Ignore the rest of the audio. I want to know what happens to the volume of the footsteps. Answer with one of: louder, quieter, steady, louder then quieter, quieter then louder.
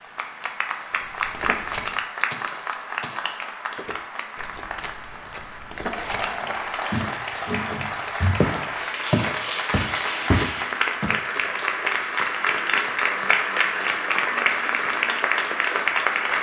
quieter then louder.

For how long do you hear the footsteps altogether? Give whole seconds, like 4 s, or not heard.
10 s.